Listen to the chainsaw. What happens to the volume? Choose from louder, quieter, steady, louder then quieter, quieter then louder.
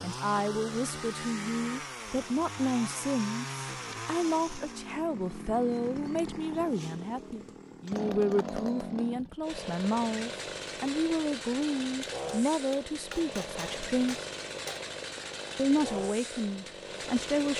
steady.